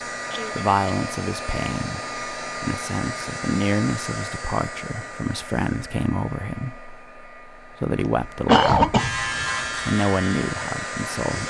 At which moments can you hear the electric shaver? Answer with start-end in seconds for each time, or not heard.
8.9-11.4.